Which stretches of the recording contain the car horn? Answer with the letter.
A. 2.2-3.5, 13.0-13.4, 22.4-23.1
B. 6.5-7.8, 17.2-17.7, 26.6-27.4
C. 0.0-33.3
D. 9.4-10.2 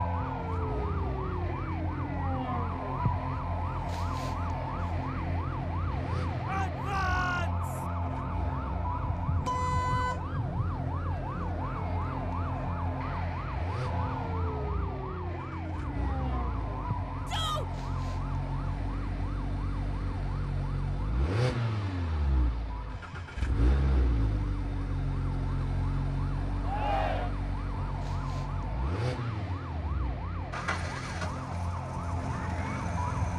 D.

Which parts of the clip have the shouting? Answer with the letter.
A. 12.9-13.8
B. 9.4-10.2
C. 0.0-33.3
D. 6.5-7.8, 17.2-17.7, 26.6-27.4
D.